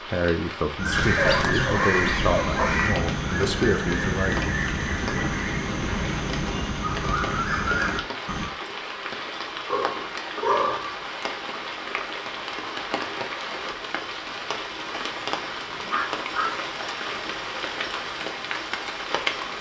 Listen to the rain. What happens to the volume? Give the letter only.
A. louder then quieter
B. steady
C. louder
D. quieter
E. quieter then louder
B.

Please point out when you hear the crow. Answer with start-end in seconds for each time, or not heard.
0.8-8.6.